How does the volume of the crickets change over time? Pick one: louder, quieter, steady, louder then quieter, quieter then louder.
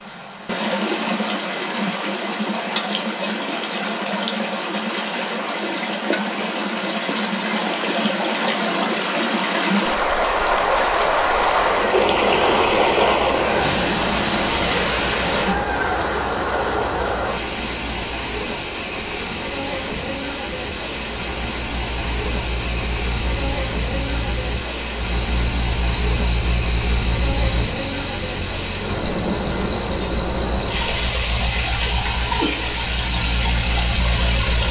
louder.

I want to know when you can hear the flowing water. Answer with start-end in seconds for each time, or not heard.
0.0-34.6.